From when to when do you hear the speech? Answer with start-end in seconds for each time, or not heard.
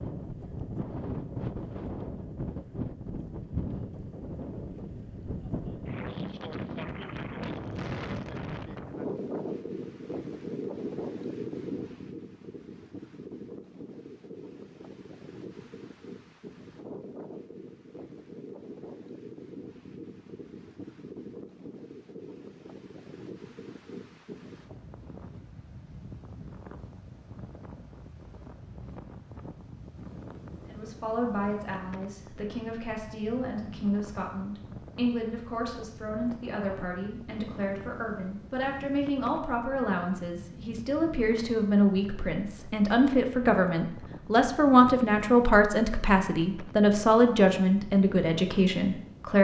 30.6-49.3.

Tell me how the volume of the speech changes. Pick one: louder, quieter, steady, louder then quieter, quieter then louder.
louder.